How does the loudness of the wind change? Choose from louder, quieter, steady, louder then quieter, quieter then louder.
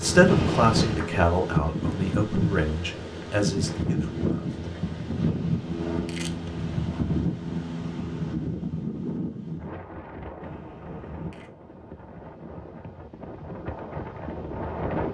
quieter.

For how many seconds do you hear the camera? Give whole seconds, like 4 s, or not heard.
3 s.